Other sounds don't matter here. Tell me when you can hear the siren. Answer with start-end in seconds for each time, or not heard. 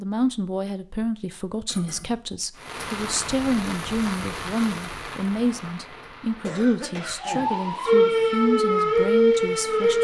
7.2-9.9.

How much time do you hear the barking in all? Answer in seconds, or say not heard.
not heard.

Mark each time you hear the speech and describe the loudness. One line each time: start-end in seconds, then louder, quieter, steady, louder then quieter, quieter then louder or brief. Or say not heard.
0.0-9.9 steady.